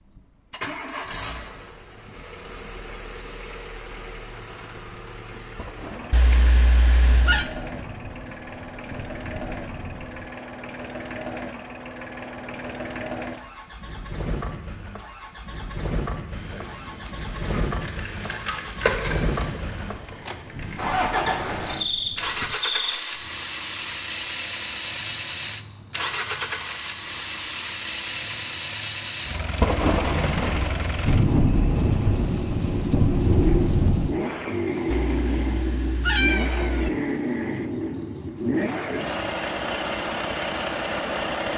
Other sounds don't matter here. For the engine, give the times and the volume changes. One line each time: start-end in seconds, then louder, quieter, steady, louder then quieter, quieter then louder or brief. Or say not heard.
0.1-41.5 louder.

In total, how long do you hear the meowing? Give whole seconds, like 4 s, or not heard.
3 s.